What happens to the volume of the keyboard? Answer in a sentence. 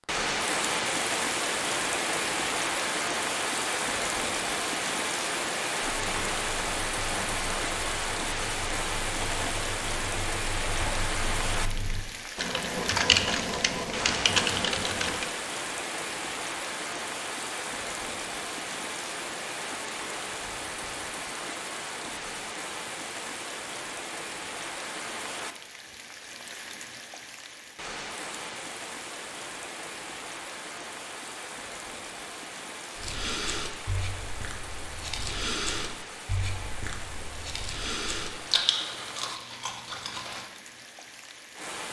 The loudness of the keyboard goes up.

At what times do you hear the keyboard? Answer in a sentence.
The keyboard can be heard from 5.8 to 15.3 s.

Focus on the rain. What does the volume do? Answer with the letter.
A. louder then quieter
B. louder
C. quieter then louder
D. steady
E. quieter
E.